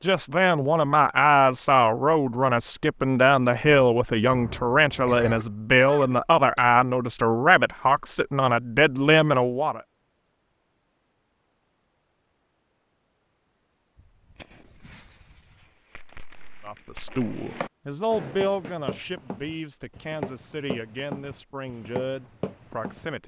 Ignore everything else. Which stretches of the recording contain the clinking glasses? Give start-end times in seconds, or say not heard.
not heard.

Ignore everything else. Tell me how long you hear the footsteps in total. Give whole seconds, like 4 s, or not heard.
6 s.